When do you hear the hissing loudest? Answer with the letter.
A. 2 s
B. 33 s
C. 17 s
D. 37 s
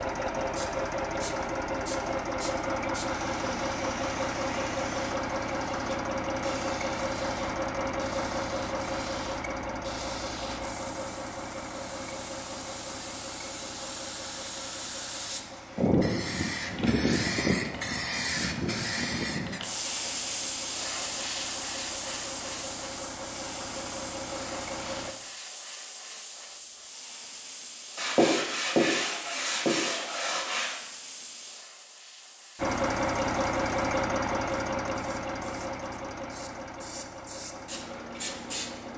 C.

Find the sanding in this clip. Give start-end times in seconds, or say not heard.
27.9-30.8.